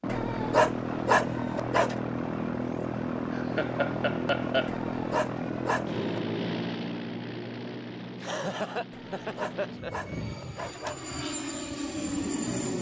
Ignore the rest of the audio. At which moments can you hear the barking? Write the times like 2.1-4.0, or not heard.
0.1-1.9, 4.7-6.2, 8.9-11.1.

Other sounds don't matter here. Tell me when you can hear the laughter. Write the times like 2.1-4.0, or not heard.
3.3-4.7, 8.2-10.1.